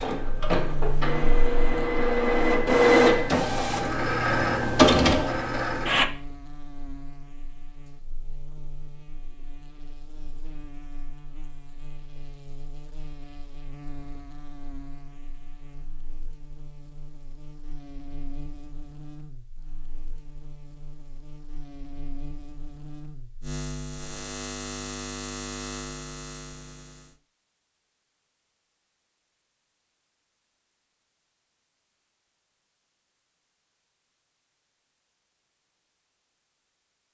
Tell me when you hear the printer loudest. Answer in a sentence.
The volume of the printer peaks at 3 seconds.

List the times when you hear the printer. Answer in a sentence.
The printer can be heard from 0.0 to 6.0 s.